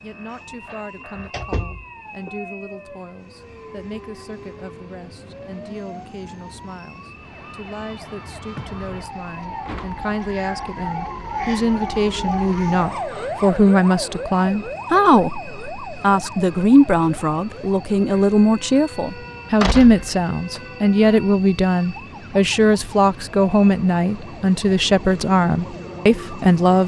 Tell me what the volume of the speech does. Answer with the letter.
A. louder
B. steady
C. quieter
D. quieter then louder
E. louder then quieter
A.